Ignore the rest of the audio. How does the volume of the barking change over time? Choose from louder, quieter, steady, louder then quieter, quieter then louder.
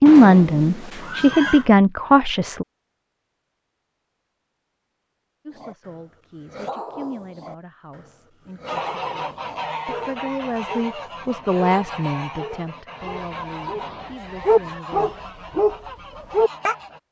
louder.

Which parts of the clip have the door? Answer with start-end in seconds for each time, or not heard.
not heard.